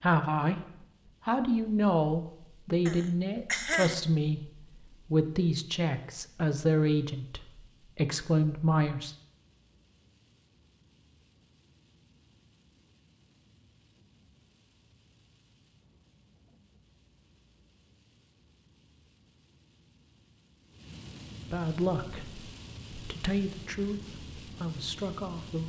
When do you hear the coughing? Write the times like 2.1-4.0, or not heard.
2.9-4.0.